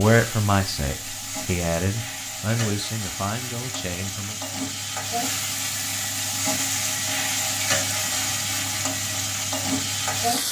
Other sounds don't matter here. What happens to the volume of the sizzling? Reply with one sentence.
The volume of the sizzling goes up.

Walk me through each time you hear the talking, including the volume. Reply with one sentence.
The talking can be heard from 0.0 to 4.4 s, getting quieter.